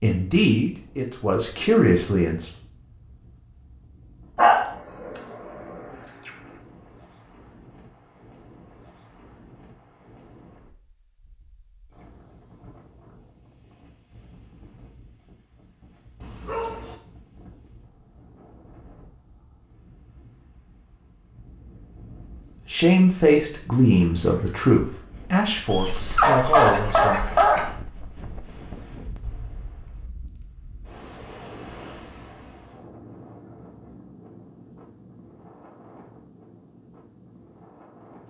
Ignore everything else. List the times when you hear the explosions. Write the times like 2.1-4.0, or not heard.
29.2-30.1.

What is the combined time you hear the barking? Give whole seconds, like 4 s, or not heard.
5 s.